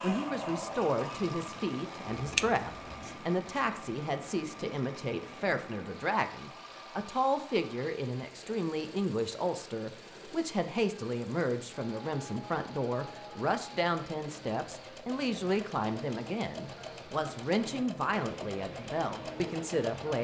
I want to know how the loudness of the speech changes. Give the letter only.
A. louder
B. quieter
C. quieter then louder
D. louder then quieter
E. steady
E.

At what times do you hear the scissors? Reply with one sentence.
You can hear the scissors from 2.1 to 3.1 s.